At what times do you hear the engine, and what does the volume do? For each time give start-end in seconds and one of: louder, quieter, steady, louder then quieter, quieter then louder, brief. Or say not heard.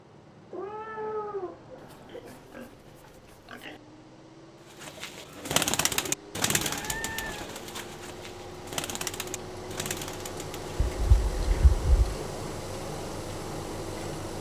0.0-14.3 louder.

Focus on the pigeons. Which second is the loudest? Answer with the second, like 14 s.
6 s.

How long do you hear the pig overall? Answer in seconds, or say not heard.
2 s.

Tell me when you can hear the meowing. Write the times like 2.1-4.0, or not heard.
0.5-2.2, 6.6-7.5, 10.8-12.2.